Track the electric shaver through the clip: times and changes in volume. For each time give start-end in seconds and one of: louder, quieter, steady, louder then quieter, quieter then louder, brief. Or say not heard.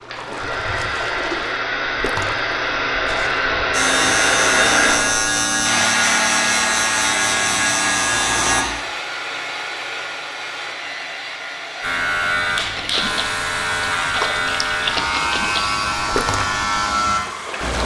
3.7-8.7 steady
11.8-17.8 steady.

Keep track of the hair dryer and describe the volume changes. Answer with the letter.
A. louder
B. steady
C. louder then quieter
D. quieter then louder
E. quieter
E.